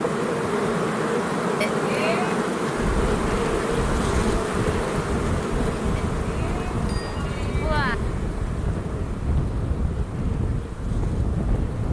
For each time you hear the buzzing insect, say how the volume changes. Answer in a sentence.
The buzzing insect can be heard from 0.0 to 11.8 s, getting quieter.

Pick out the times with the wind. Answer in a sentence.
You can hear the wind from 3.0 to 11.8 s.